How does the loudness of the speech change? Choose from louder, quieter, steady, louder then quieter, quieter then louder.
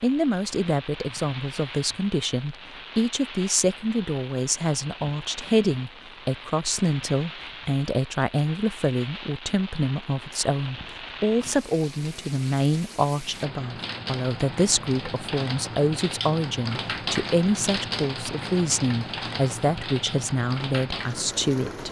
steady.